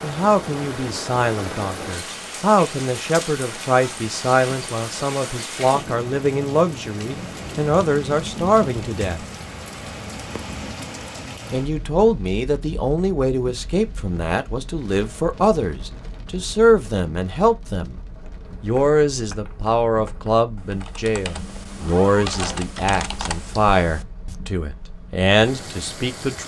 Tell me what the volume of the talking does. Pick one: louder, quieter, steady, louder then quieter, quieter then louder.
steady.